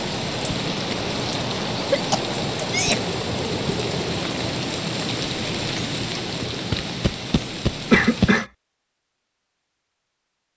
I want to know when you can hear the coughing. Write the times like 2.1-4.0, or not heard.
1.8-3.0, 7.9-8.4.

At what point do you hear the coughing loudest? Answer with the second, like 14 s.
8 s.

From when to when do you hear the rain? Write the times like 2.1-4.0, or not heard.
0.0-8.4.